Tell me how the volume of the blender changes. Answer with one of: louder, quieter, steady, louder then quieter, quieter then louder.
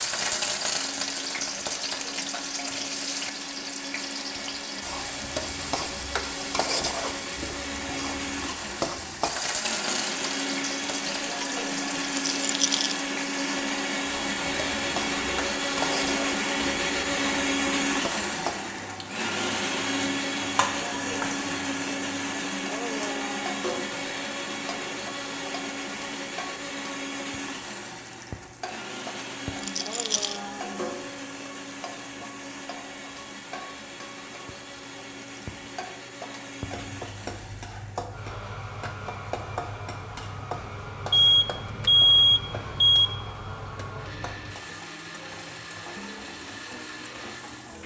louder then quieter.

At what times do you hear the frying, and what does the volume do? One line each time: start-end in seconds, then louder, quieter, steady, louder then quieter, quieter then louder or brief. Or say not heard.
0.0-47.8 quieter.